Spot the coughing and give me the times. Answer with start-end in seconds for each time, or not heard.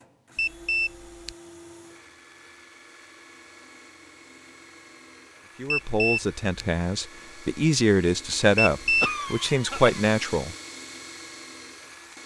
9.0-10.0.